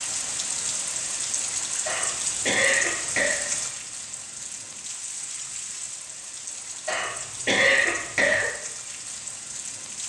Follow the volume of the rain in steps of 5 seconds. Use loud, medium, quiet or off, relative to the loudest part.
loud, medium.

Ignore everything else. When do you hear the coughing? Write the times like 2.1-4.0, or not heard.
1.9-3.4, 6.8-8.4.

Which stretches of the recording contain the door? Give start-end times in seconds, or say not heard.
not heard.